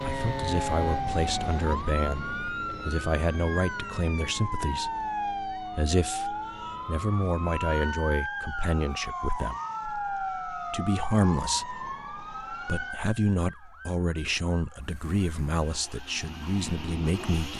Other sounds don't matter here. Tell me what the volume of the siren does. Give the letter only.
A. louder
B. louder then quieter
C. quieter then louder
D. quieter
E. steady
D.